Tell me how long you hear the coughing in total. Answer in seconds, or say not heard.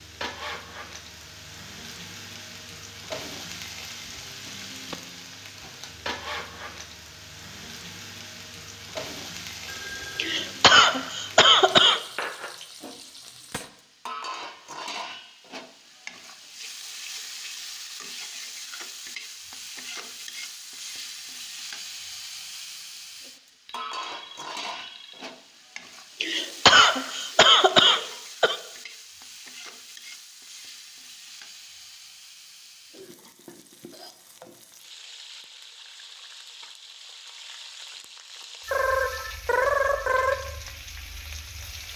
4 s.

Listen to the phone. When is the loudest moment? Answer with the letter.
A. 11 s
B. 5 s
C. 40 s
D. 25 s
C.